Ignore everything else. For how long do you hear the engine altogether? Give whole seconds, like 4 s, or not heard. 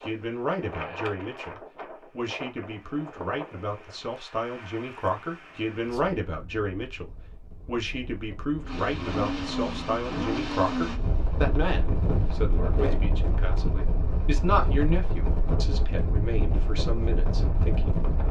4 s.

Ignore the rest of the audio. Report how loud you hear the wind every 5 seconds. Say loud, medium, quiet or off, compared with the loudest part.
medium, quiet, loud, loud.